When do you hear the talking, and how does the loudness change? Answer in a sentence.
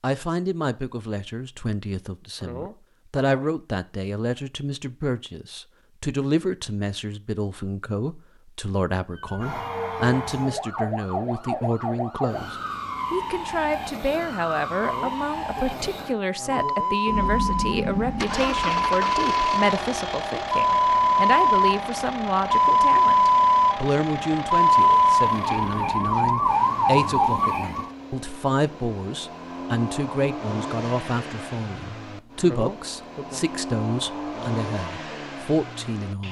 The talking can be heard from 0.0 to 36.2 s, at a steady volume.